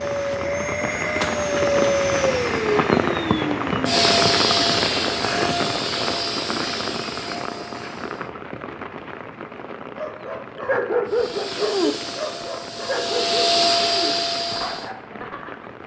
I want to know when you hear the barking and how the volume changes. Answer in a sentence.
The barking can be heard from 9.9 to 15.7 s, getting quieter.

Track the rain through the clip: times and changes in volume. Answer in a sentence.
You can hear the rain from 0.0 to 15.8 s, getting quieter.